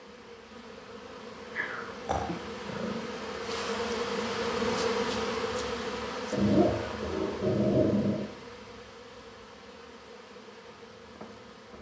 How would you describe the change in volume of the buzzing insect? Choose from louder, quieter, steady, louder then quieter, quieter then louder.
louder then quieter.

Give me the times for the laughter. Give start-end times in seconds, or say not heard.
not heard.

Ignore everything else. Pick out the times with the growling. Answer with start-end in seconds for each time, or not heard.
1.6-3.0, 6.3-8.3.